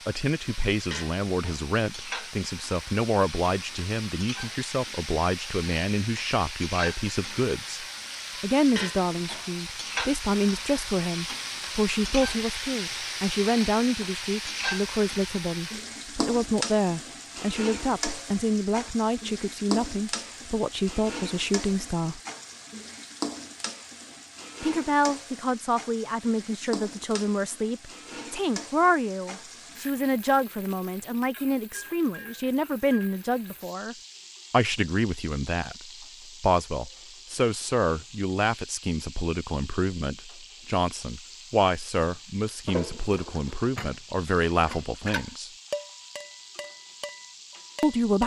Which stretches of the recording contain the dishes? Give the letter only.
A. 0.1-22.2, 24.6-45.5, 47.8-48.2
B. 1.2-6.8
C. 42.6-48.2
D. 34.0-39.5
C.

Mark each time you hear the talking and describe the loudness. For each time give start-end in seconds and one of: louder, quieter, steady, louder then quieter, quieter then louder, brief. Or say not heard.
0.1-22.2 steady
24.6-45.5 steady
47.8-48.2 brief.